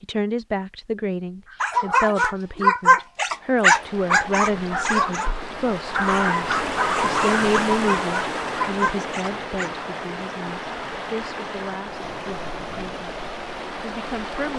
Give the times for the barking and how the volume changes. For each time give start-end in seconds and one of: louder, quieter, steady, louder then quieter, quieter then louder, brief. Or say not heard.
1.5-9.7 quieter.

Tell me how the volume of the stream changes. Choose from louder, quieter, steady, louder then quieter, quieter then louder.
louder then quieter.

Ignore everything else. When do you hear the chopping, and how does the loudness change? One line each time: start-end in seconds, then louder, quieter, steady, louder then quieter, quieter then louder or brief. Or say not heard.
not heard.